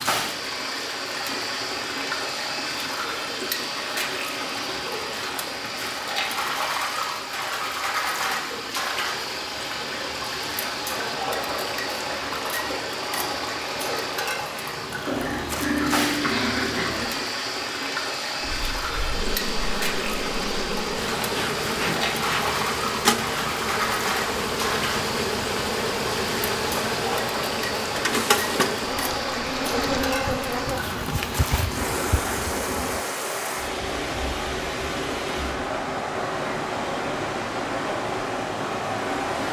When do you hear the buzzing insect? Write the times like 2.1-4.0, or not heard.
18.4-33.0.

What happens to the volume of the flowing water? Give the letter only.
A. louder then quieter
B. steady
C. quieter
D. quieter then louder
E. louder
B.